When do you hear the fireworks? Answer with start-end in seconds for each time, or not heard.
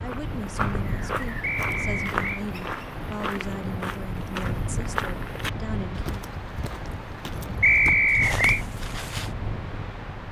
not heard.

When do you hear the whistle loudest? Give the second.
8 s.